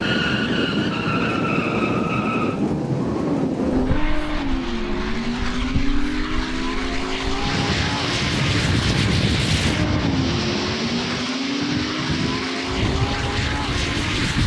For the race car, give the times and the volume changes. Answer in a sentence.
The race car can be heard from 0.0 to 14.4 s, at a steady volume.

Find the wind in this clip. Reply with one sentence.
The wind can be heard from 0.0 to 14.4 s.